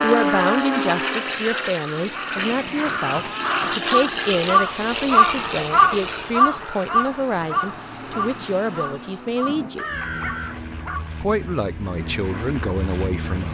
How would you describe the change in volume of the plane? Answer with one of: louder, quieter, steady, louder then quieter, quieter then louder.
quieter.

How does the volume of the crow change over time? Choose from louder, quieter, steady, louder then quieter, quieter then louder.
louder then quieter.